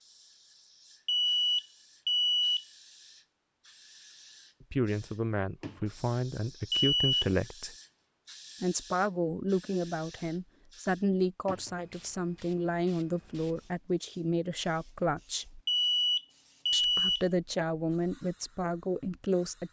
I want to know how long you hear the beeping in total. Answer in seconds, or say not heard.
4 s.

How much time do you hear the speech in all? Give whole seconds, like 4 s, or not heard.
13 s.